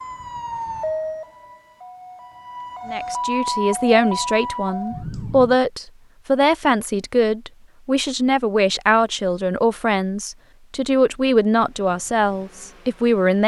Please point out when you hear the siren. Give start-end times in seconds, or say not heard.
0.0-5.5.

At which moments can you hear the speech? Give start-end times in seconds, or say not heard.
2.9-13.4.